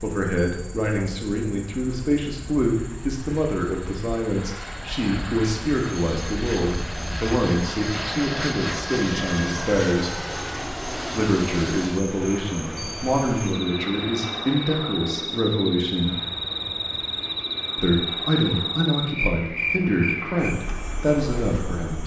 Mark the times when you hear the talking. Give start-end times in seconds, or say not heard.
0.0-10.2, 11.1-16.2, 17.8-22.0.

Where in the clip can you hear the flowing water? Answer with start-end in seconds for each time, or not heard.
not heard.